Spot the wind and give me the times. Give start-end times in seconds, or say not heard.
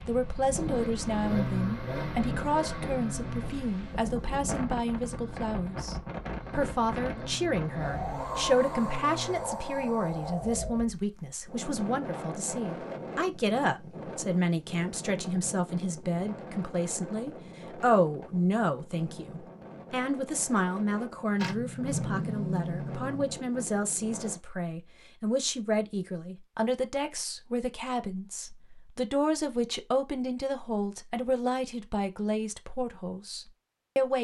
0.0-24.4.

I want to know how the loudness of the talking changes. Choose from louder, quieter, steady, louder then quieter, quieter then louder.
steady.